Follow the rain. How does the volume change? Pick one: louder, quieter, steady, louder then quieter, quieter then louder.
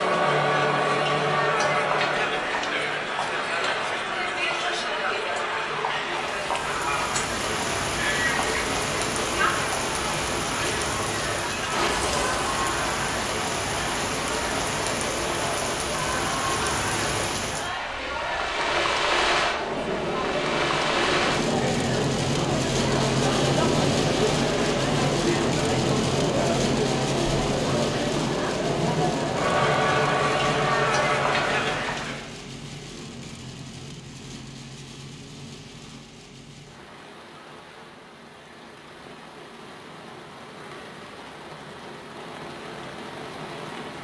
quieter.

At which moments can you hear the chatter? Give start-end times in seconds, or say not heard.
0.0-32.2.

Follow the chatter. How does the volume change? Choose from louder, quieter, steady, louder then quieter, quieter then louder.
quieter then louder.